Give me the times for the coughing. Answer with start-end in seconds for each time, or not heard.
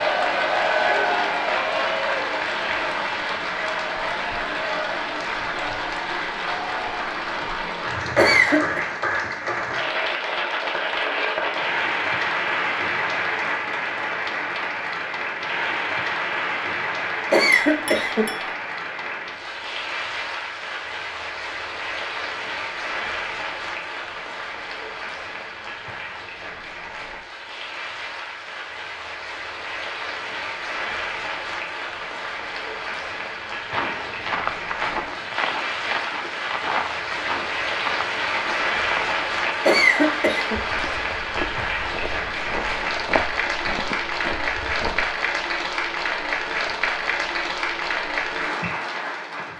8.2-8.8, 17.3-18.2, 39.6-40.6.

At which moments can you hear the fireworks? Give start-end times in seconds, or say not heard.
not heard.